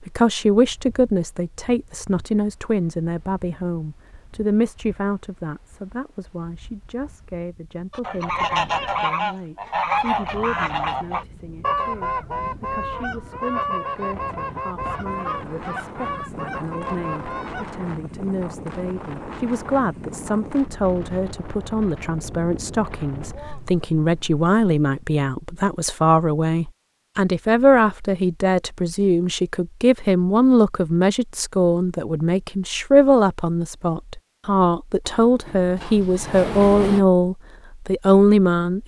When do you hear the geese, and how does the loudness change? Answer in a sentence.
You can hear the geese from 7.9 to 17.6 s, getting quieter.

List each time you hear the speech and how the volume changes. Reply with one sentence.
You can hear the speech from 0.1 to 38.8 s, getting quieter then louder.